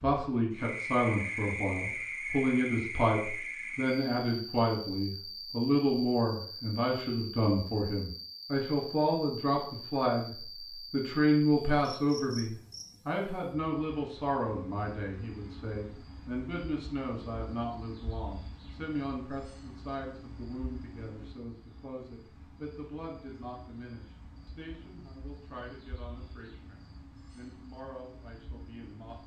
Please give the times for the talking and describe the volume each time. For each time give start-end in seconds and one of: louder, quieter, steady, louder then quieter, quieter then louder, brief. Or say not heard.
0.0-29.2 quieter.